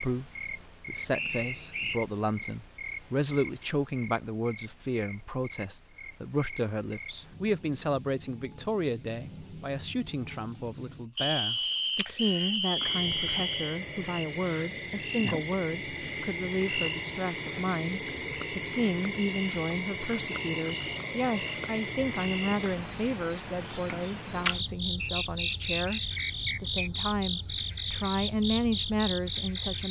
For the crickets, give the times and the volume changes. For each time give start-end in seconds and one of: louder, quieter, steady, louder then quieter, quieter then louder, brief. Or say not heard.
0.0-29.8 louder.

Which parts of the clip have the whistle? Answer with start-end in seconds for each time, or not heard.
1.1-2.0, 11.2-13.8, 25.0-26.9.